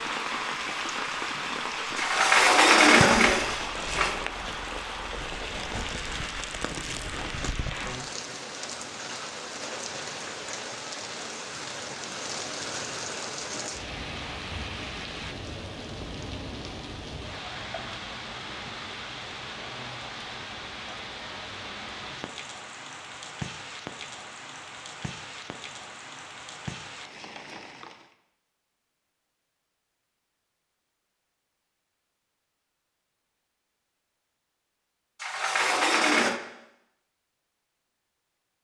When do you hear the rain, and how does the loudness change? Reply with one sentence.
You can hear the rain from 0.0 to 28.1 s, getting quieter.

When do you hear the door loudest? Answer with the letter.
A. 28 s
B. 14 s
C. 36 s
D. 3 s
D.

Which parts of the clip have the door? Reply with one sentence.
The door can be heard from 1.9 to 4.2 s and from 35.2 to 36.4 s.